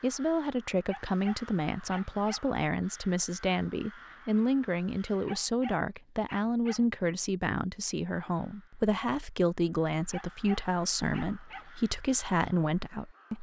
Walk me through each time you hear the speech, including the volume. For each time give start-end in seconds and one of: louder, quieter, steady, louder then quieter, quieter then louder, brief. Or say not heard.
0.0-13.3 steady.